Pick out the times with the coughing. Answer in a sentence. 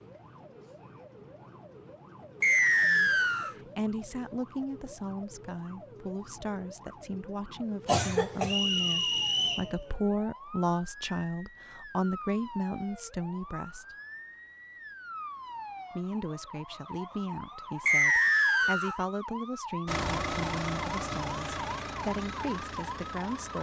The coughing can be heard from 7.8 to 8.6 s.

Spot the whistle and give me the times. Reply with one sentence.
The whistle can be heard from 2.4 to 3.5 s, from 8.4 to 9.7 s and from 17.9 to 18.9 s.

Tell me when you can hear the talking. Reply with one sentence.
You can hear the talking from 2.8 to 13.9 s and from 15.9 to 23.5 s.